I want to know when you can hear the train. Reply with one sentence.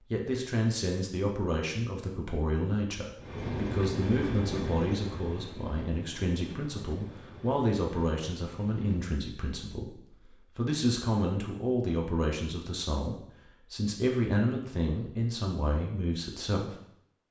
The train can be heard from 3.1 to 9.2 s.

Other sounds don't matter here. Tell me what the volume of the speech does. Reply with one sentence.
The volume of the speech stays about the same.